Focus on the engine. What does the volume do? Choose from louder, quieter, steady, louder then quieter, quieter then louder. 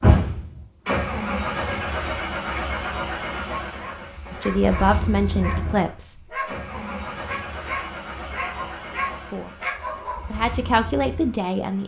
quieter.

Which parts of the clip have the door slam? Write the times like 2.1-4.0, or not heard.
not heard.